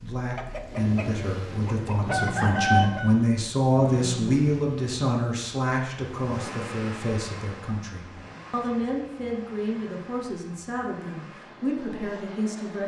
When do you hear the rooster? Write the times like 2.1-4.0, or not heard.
0.3-3.2.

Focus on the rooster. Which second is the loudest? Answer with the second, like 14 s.
3 s.